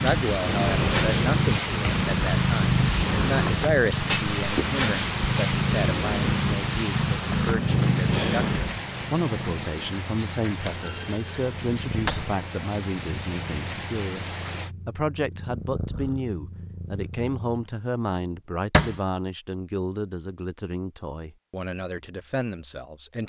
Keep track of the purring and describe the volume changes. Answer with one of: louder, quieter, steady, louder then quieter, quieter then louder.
quieter.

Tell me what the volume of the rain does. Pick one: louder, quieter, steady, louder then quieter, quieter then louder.
quieter.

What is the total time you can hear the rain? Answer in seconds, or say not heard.
15 s.